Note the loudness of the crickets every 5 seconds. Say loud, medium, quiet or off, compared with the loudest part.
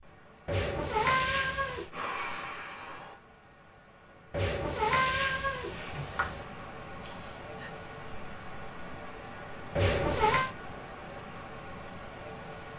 quiet, loud, loud.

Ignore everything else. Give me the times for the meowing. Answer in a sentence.
You can hear the meowing from 0.5 to 1.9 s, from 4.3 to 6.5 s and from 9.8 to 10.5 s.